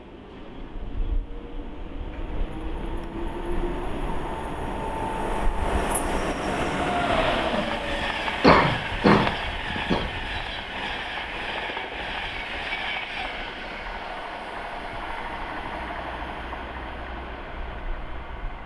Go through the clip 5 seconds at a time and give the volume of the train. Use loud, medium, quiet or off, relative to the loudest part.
medium, loud, medium, medium.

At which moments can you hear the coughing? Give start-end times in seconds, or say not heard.
7.5-10.1.